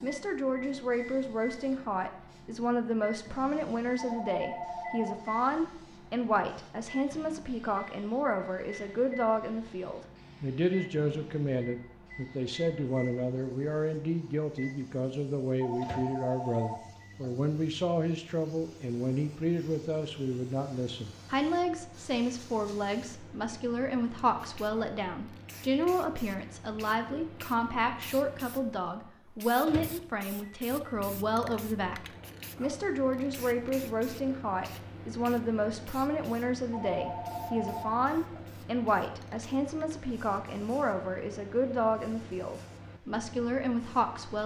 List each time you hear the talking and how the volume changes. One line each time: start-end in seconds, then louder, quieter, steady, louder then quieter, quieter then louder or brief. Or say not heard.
0.0-44.4 steady.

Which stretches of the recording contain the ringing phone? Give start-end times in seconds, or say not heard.
4.0-5.2, 15.6-17.3, 36.7-38.5.